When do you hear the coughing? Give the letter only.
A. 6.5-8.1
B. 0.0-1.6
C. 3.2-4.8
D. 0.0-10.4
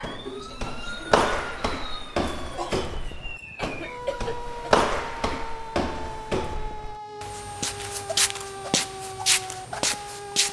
C.